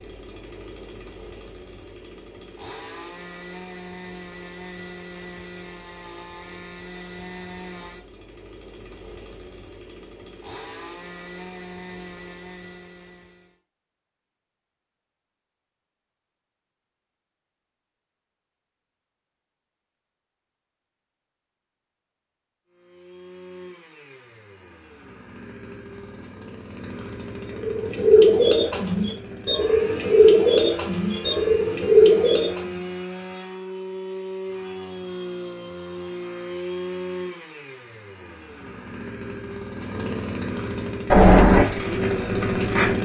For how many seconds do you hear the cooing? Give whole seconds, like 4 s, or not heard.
7 s.